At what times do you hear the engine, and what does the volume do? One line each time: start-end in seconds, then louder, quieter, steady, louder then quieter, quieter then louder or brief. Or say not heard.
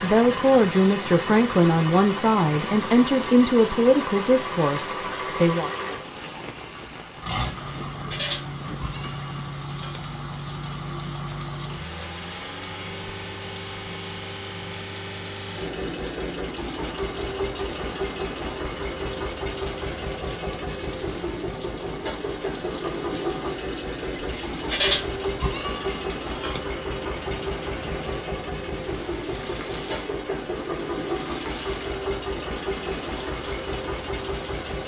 0.0-34.8 steady.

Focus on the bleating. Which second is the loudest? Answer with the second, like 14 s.
25 s.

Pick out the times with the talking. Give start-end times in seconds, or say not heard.
0.0-5.7.